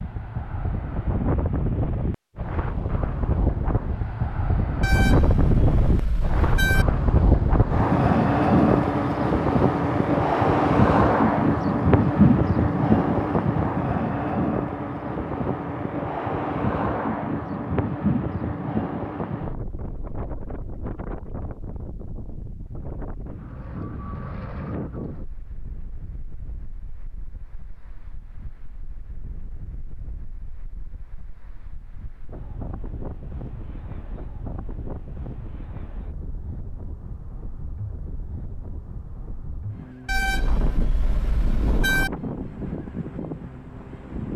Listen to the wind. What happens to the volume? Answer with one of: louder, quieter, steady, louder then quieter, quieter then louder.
quieter then louder.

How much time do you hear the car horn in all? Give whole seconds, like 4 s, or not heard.
4 s.